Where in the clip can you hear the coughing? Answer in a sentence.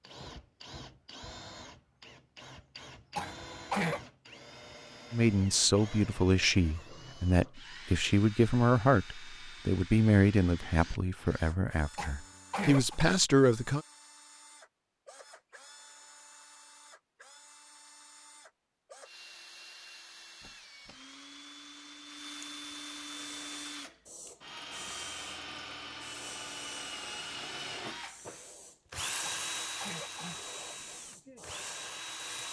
You can hear the coughing from 3.1 to 4.0 s, from 11.9 to 13.0 s and from 29.2 to 30.5 s.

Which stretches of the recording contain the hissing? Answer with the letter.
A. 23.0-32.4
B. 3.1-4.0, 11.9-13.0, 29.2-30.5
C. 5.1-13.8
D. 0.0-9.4
A.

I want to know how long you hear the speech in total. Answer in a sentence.
The speech can be heard for 9 seconds in total.